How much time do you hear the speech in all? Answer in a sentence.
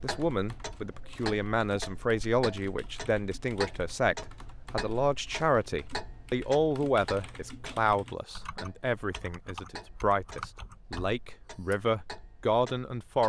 You can hear the speech for 13 seconds altogether.